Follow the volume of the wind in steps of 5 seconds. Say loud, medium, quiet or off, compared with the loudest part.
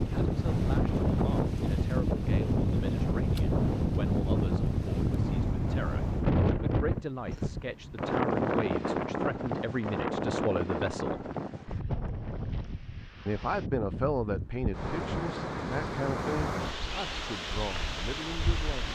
loud, loud, medium, medium.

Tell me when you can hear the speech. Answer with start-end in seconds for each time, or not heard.
0.0-11.2, 13.2-18.9.